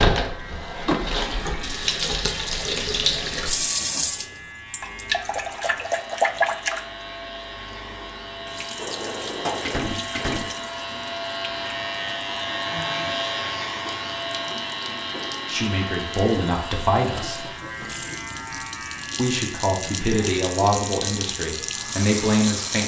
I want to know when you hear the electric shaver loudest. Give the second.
13 s.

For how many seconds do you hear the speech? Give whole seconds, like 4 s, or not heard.
6 s.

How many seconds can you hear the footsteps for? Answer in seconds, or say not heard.
not heard.